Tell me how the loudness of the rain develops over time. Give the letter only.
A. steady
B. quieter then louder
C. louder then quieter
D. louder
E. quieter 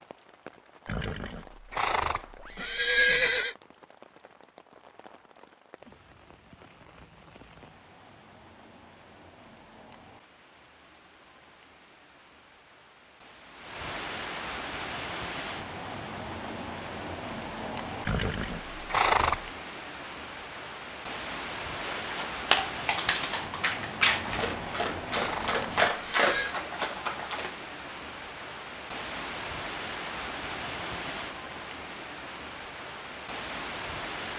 D.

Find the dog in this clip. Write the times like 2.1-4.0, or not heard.
21.8-27.6.